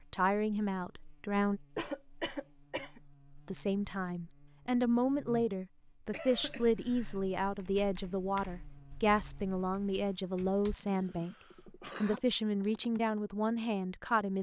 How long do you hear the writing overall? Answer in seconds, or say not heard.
not heard.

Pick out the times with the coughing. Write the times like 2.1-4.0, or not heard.
1.8-3.0, 6.1-7.2, 10.3-12.2.